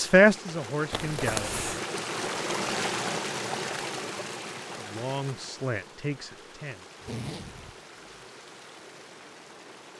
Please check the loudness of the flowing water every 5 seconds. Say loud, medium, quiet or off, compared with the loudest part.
loud, quiet.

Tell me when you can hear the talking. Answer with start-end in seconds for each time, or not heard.
0.0-1.6, 4.8-6.8.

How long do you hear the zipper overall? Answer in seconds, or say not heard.
2 s.